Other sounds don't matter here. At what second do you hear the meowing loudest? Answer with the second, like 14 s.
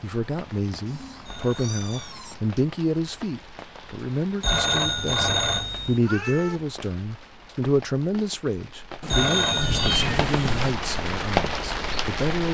10 s.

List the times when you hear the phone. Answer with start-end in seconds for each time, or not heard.
1.2-2.2, 4.4-6.0, 9.1-10.0.